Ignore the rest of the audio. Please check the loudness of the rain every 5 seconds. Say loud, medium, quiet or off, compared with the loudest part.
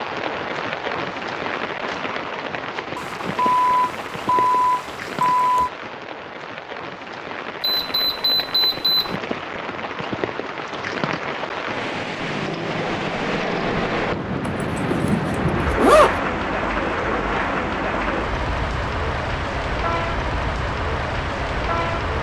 medium, medium, loud, loud, loud.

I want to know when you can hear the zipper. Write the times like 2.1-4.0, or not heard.
14.5-16.2.